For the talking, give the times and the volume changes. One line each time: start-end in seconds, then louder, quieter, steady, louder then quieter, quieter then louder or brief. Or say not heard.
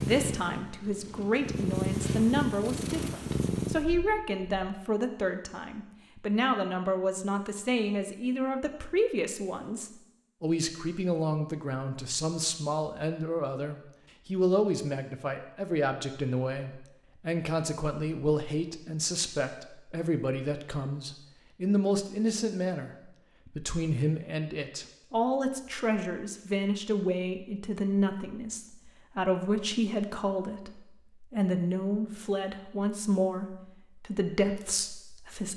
0.0-35.5 steady.